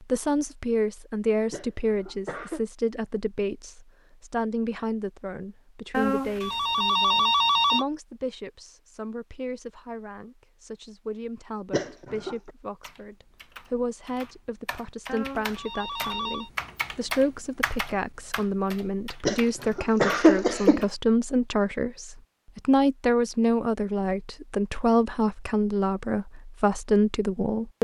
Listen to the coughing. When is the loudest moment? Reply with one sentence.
The loudest moment of the coughing is at 20 seconds.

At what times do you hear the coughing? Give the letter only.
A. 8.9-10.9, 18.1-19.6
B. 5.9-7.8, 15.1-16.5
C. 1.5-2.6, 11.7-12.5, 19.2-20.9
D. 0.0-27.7
C.